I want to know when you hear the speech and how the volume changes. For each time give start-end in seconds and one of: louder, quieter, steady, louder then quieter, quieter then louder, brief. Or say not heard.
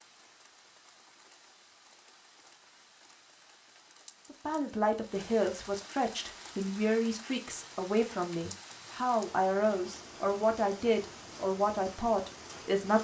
4.3-12.9 steady.